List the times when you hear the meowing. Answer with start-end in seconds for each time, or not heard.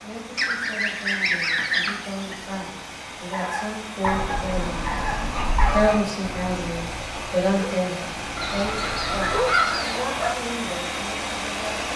not heard.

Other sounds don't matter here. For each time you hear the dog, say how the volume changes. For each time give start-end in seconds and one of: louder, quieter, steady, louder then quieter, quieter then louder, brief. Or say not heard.
3.3-10.3 quieter then louder.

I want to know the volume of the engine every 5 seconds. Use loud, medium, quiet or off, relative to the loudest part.
medium, loud, loud.